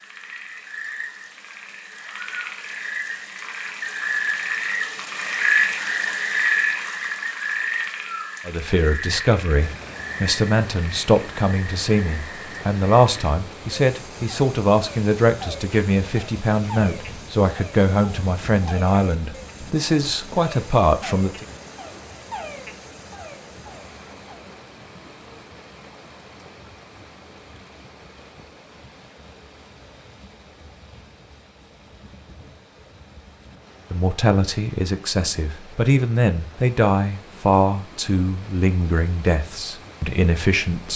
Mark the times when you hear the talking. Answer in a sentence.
The talking can be heard from 8.4 to 21.4 s and from 33.9 to 40.9 s.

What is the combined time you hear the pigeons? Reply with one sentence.
You can't hear the pigeons here.